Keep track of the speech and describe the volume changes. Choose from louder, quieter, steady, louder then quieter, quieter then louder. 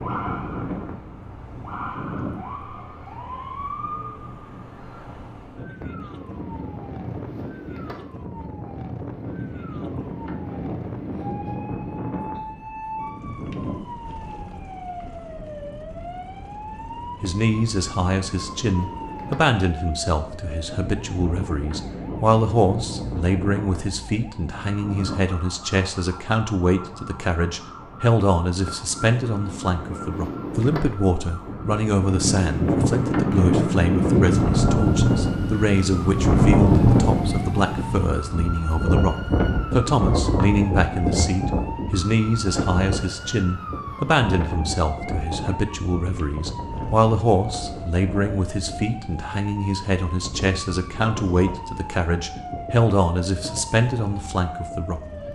steady.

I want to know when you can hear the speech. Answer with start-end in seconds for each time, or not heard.
17.2-55.3.